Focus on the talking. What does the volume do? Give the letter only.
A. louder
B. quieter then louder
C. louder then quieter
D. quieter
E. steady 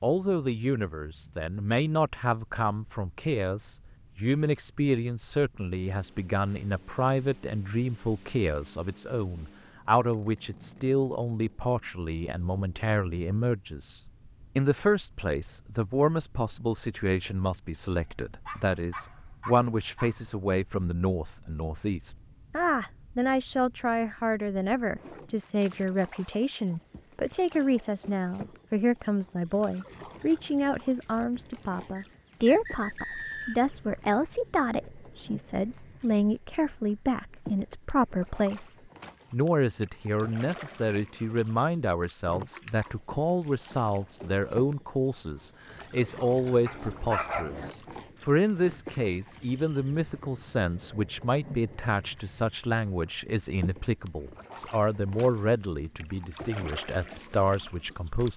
E.